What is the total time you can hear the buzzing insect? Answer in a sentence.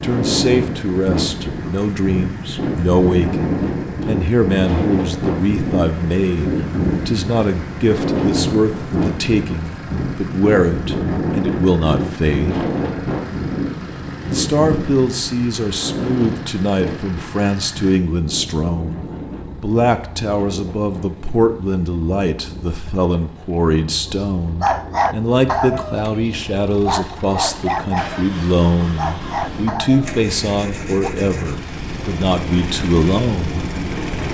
The buzzing insect can't be heard in this clip.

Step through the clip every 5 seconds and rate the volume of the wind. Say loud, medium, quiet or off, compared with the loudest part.
loud, loud, loud, medium, quiet, quiet, medium.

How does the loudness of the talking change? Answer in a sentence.
The loudness of the talking stays about the same.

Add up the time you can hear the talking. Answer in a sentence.
The talking can be heard for 32 seconds in total.